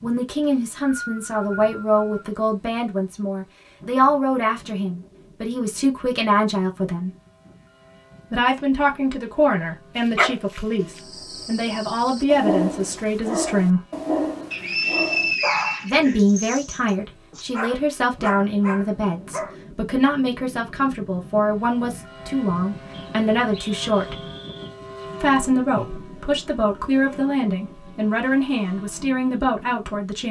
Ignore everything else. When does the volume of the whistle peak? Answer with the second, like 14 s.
15 s.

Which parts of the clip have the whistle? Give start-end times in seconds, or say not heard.
0.4-2.3, 14.5-15.9, 22.9-24.8.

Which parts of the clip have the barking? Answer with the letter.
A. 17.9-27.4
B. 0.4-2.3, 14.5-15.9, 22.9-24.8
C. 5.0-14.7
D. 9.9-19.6
D.